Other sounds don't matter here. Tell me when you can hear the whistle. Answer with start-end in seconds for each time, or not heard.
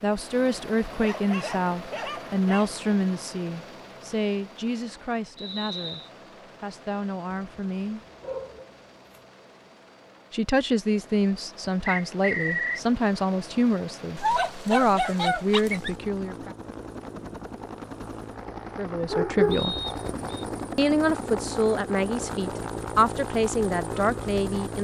5.3-6.1, 11.8-12.8, 19.5-20.4.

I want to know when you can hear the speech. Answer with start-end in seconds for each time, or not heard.
0.0-8.0, 10.3-16.6, 18.8-19.8, 20.8-24.7.